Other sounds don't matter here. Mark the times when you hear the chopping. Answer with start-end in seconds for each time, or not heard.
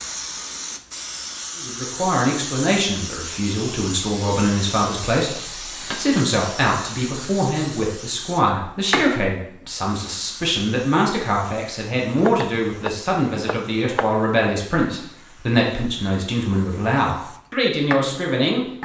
12.2-14.1.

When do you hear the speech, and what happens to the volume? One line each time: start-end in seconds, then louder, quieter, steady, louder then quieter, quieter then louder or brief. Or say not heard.
1.6-18.6 steady.